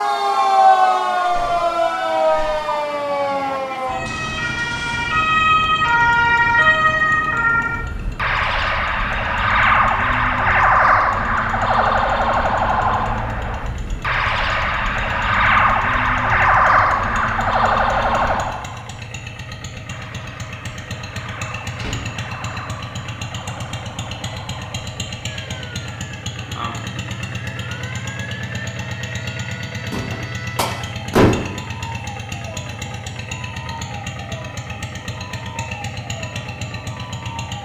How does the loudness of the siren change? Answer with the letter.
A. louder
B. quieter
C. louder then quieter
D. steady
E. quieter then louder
B.